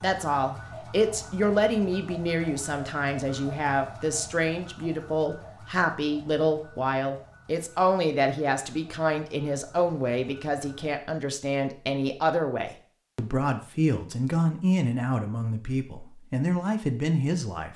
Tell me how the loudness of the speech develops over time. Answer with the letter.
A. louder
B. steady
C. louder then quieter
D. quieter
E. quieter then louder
B.